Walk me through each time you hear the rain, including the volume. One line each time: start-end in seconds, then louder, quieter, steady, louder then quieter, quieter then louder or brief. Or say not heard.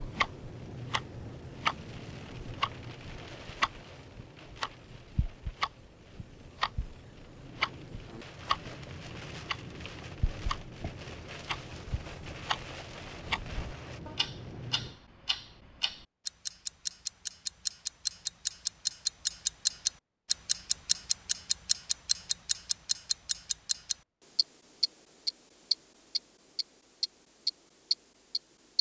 0.0-15.0 quieter then louder.